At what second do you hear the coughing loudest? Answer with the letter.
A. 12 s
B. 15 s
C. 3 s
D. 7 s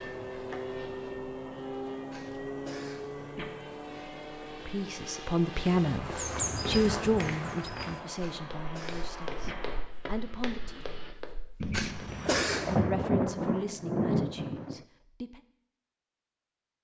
A.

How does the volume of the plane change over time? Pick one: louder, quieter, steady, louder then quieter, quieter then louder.
quieter.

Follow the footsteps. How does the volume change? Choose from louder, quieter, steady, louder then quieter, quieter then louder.
quieter.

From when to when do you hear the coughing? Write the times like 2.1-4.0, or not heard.
2.1-3.5, 8.2-9.6, 11.7-12.8.